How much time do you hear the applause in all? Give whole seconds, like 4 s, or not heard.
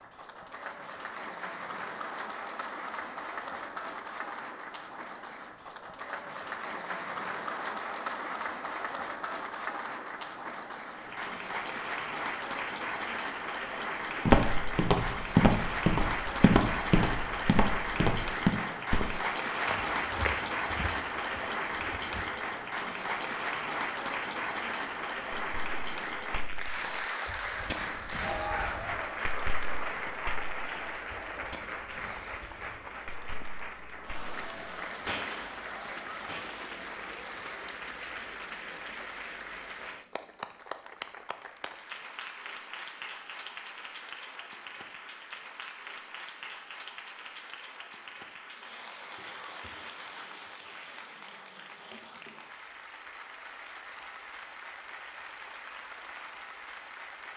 57 s.